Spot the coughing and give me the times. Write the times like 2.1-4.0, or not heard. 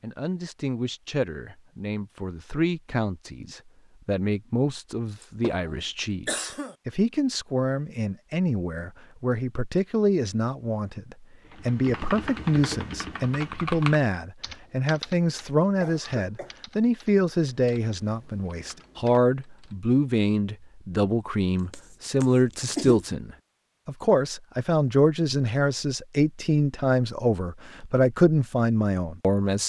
5.2-6.8, 15.8-16.6, 21.7-23.1.